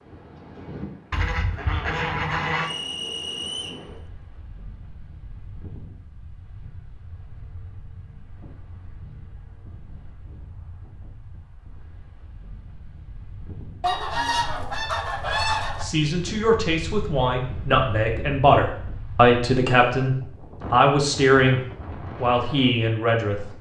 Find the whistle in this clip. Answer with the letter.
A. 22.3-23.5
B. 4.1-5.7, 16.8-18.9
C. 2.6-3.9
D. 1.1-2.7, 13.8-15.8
C.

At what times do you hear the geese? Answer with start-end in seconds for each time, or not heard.
1.1-2.7, 13.8-15.8.